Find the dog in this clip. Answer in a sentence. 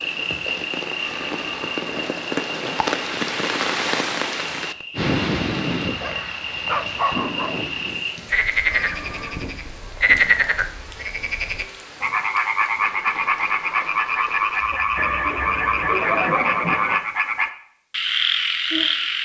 You can hear the dog from 5.8 to 7.6 s.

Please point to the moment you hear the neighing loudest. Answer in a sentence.
The loudest moment of the neighing is at 16 seconds.